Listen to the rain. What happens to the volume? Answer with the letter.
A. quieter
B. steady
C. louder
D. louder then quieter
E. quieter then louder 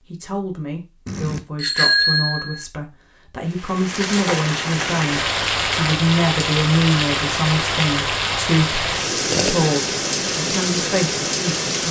B.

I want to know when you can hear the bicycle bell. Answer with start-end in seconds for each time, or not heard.
1.1-2.6.